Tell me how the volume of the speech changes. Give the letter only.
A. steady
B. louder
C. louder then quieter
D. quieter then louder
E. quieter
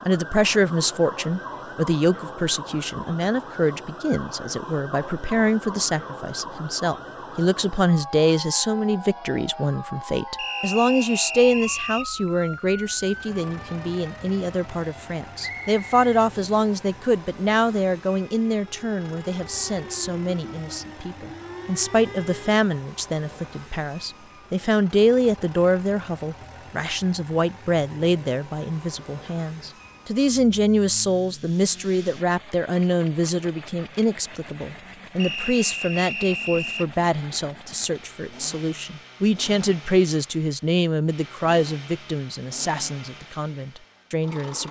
A.